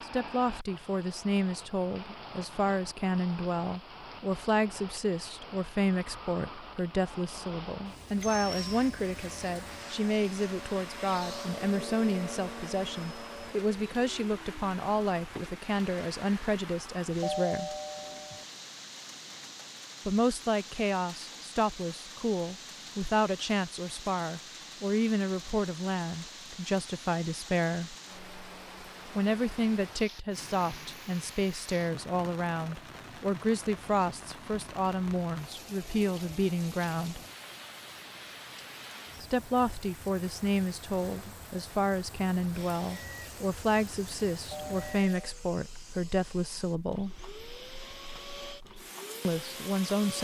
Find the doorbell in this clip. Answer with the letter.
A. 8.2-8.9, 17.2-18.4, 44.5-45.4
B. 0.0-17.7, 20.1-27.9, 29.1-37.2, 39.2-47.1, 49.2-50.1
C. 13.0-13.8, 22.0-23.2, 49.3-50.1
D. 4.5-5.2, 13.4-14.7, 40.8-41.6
A.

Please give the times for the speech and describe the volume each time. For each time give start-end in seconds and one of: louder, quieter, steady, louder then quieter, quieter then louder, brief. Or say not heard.
0.0-17.7 steady
20.1-27.9 steady
29.1-37.2 steady
39.2-47.1 steady
49.2-50.1 brief.